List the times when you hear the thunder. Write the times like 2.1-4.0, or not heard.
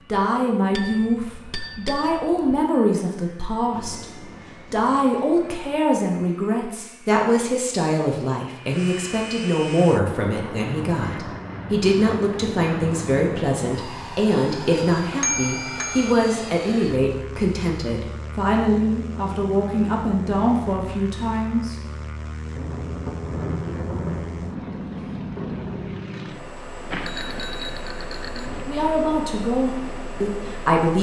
3.7-5.8, 22.6-25.8.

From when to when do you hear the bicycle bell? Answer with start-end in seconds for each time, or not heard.
0.8-2.5, 15.2-16.1, 26.9-28.6.